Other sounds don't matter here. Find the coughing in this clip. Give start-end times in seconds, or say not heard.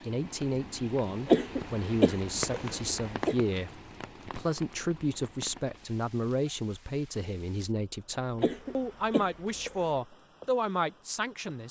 1.2-3.4, 8.4-9.9.